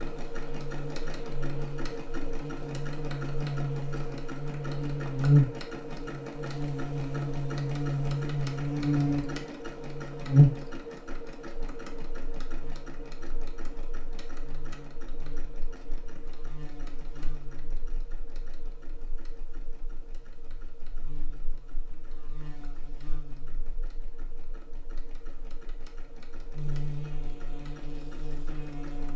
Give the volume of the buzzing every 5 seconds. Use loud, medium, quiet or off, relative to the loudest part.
medium, loud, loud, quiet, quiet, quiet.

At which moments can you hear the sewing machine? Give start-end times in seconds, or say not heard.
0.0-29.1.